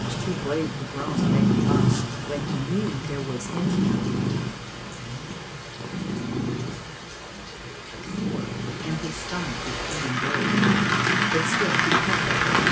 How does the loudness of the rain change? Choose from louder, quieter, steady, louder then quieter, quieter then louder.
louder.